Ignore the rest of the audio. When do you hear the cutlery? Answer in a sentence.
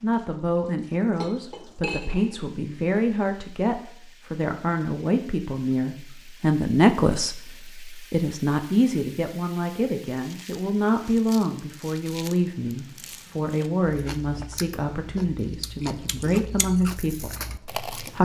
You can hear the cutlery from 1.2 to 2.4 s.